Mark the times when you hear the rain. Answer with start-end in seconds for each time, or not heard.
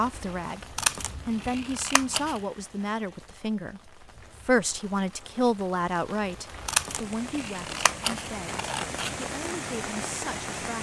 0.0-10.7.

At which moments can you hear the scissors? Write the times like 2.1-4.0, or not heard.
0.8-2.4, 6.7-9.2.